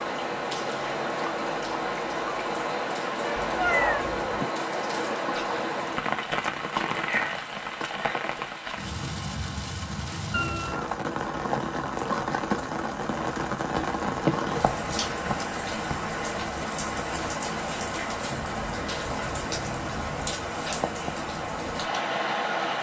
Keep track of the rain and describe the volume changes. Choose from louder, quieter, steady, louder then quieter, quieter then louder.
steady.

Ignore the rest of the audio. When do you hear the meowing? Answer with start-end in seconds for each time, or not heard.
3.4-4.4, 10.3-10.9, 18.3-20.3.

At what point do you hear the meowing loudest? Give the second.
4 s.